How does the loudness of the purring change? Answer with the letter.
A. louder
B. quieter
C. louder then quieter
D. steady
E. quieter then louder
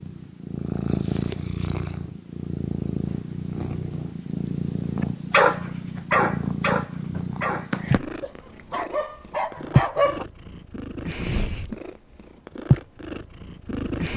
D.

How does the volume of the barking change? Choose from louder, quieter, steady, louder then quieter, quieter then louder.
quieter.